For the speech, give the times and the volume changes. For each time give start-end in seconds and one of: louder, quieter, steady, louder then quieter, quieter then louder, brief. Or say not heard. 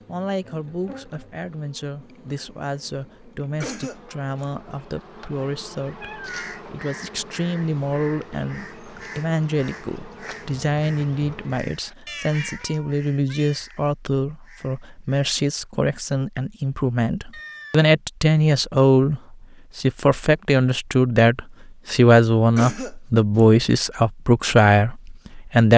0.1-25.7 louder.